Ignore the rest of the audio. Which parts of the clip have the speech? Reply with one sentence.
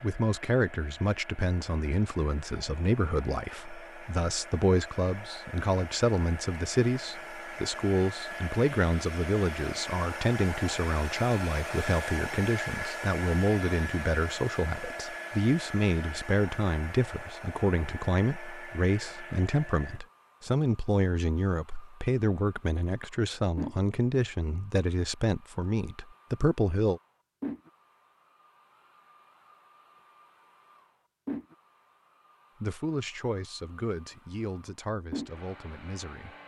The speech can be heard from 0.0 to 27.0 s and from 32.6 to 36.4 s.